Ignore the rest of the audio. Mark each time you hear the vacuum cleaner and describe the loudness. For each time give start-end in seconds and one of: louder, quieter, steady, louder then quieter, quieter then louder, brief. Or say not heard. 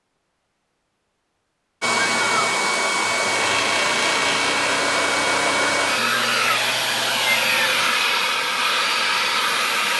1.8-9.9 steady.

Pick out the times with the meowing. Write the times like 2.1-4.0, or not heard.
1.8-2.5, 6.0-8.0.